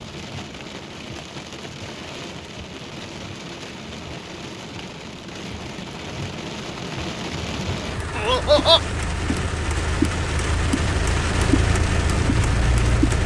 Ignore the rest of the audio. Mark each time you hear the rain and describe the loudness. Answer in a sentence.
You can hear the rain from 0.0 to 13.2 s, getting louder.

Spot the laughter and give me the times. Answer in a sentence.
The laughter can be heard from 8.2 to 8.8 s.